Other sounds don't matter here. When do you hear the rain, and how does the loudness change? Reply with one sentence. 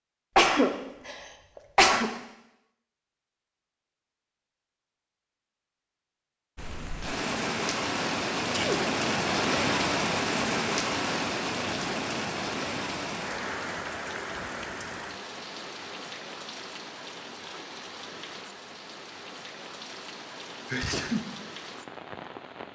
You can hear the rain from 6.5 to 22.7 s, getting quieter.